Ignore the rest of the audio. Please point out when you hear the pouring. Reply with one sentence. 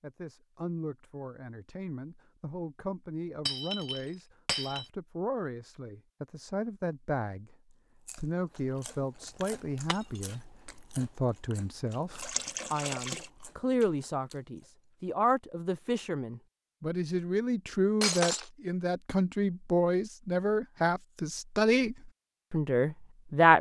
You can hear the pouring from 12.2 to 13.3 s.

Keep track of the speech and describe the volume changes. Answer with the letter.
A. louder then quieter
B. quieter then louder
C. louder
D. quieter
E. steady
C.